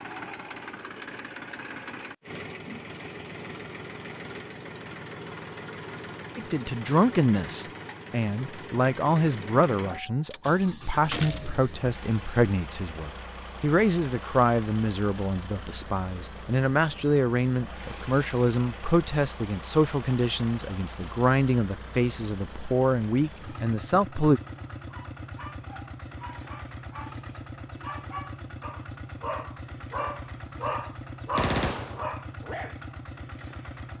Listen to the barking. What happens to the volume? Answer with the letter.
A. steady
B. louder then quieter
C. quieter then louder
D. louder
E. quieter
D.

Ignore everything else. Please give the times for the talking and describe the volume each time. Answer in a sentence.
You can hear the talking from 6.3 to 24.4 s, at a steady volume.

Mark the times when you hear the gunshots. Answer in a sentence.
You can hear the gunshots from 11.1 to 11.6 s and from 31.4 to 32.0 s.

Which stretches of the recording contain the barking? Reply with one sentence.
The barking can be heard from 24.9 to 32.8 s.